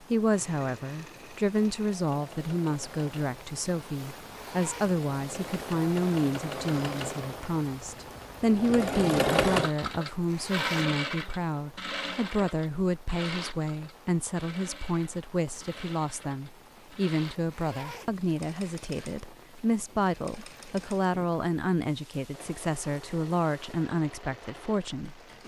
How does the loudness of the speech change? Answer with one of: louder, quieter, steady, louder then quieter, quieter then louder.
steady.